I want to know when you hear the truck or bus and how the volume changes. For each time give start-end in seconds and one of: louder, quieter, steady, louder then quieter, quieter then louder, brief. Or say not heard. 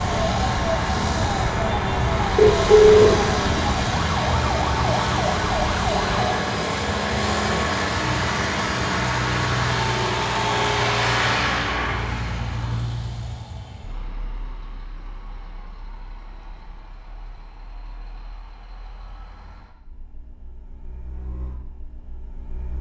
0.0-22.7 quieter.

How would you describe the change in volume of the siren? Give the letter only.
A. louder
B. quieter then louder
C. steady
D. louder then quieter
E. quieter
C.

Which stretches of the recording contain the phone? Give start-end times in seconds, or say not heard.
2.4-3.4.